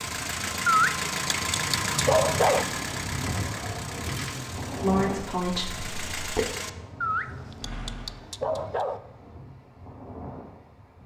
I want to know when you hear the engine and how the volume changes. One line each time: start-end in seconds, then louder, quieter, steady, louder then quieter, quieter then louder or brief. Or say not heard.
0.0-8.2 quieter.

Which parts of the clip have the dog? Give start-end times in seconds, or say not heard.
0.7-2.6, 7.0-9.0.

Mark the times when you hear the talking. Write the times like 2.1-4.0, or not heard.
4.8-6.5.